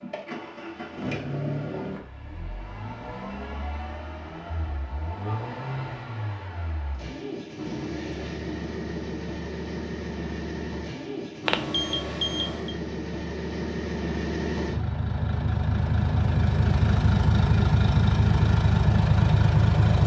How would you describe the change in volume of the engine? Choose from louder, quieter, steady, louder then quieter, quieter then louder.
louder.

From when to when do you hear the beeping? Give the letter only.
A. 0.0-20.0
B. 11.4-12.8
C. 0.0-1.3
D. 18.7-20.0
B.